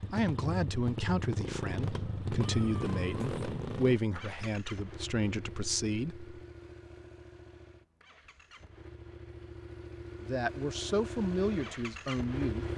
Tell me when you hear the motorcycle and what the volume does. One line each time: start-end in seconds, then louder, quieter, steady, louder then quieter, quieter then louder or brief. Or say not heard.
0.0-12.7 quieter then louder.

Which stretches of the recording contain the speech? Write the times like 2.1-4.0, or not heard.
0.1-6.2, 10.2-12.7.